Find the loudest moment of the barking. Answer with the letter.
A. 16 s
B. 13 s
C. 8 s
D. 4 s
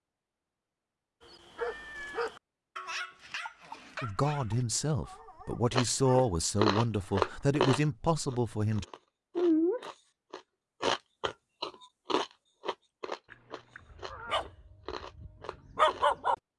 A.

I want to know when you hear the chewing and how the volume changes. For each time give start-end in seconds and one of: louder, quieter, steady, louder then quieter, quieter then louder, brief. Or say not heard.
5.7-16.4 quieter.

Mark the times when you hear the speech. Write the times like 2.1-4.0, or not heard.
4.0-8.8.